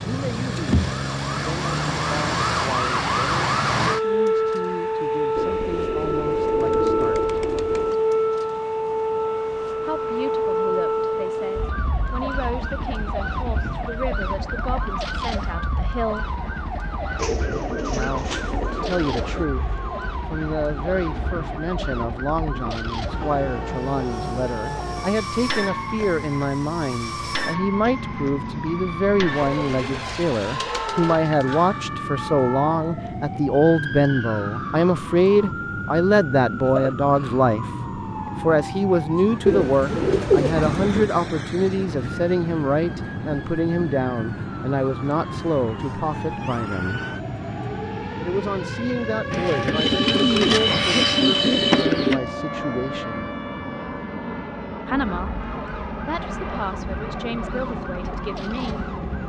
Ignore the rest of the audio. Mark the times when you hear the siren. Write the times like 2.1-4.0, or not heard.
0.0-59.2.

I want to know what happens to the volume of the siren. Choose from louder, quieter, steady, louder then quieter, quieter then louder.
quieter.